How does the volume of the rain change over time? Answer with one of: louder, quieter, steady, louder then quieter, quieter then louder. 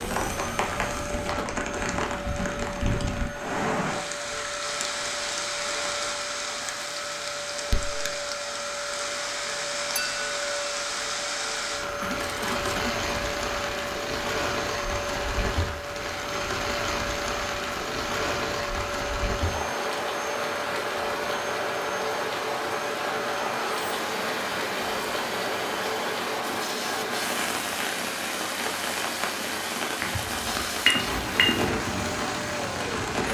steady.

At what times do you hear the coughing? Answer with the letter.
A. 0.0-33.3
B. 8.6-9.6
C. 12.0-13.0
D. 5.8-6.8
C.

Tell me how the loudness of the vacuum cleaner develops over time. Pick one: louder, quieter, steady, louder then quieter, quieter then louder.
steady.